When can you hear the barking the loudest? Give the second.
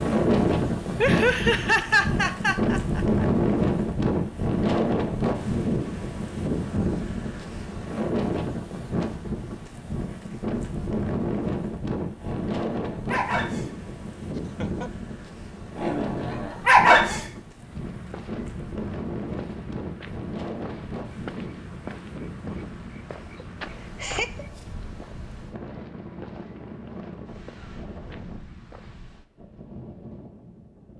17 s.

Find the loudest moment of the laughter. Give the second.
2 s.